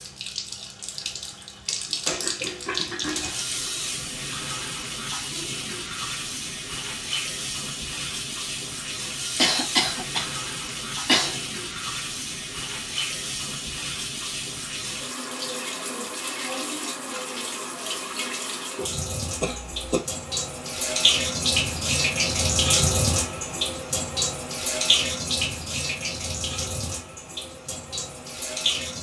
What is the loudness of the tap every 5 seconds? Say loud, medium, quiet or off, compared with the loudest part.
medium, medium, medium, medium, loud, medium.